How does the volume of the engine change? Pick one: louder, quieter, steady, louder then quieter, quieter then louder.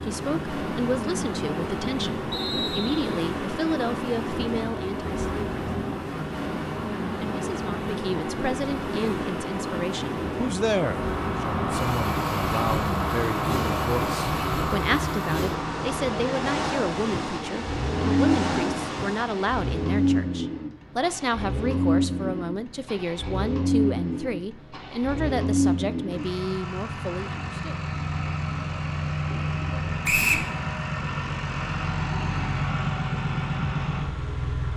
steady.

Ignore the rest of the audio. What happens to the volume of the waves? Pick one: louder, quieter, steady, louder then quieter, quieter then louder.
steady.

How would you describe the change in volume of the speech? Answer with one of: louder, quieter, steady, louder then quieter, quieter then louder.
steady.